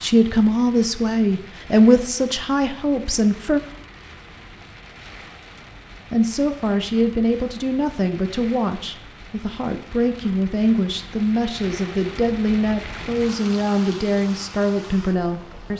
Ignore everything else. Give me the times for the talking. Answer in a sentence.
The talking can be heard from 0.0 to 3.6 s and from 6.1 to 15.7 s.